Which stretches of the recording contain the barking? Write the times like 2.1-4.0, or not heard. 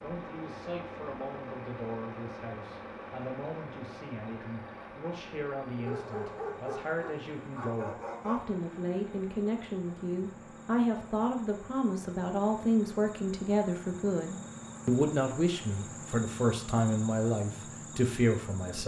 5.8-8.6.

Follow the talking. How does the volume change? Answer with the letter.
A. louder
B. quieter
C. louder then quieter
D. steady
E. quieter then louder
A.